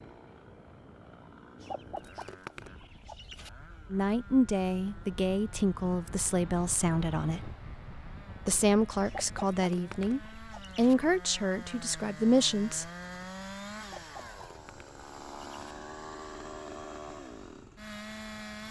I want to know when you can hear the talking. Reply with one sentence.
You can hear the talking from 3.9 to 7.4 s and from 8.4 to 12.8 s.